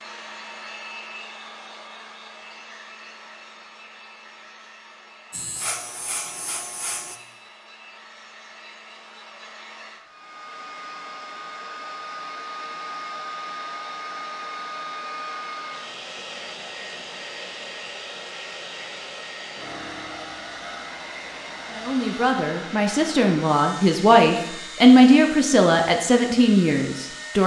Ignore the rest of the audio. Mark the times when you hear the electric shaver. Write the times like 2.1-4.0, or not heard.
5.3-7.2.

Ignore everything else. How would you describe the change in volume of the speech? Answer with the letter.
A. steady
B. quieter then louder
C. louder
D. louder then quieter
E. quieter
D.